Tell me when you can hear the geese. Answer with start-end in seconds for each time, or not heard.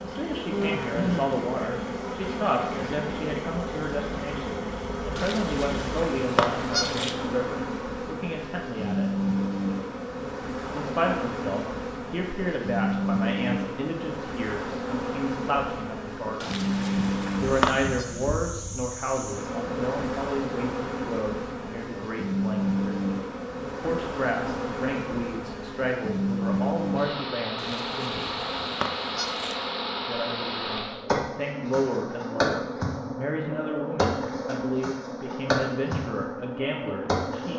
5.2-7.2, 16.4-18.1, 27.6-29.6.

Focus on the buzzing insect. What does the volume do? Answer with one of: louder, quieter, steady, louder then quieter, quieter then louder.
steady.